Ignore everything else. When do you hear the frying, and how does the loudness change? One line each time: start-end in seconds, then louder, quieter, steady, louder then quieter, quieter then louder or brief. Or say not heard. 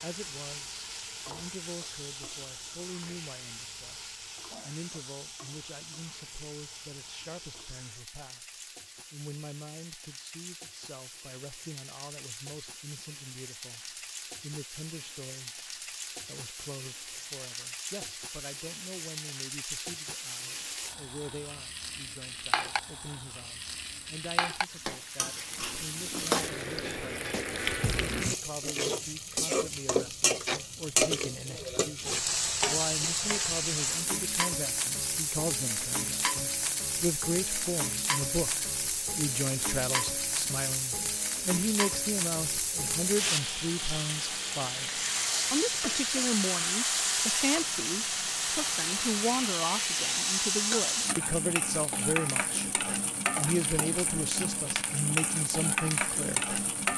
0.0-56.9 louder.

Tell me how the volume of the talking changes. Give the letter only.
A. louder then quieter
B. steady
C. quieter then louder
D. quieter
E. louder
E.